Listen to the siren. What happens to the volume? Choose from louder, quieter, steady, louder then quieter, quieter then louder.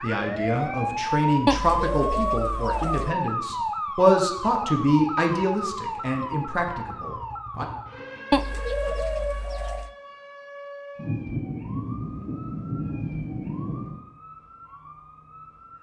quieter.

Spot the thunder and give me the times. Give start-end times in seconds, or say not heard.
10.9-14.0.